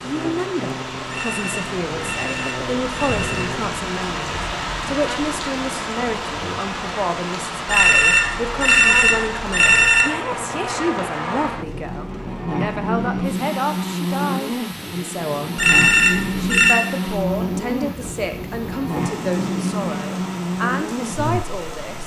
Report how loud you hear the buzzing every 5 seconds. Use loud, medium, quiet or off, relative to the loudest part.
medium, medium, loud, loud, loud.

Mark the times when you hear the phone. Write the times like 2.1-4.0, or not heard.
1.1-3.5, 7.7-10.1, 15.6-16.8.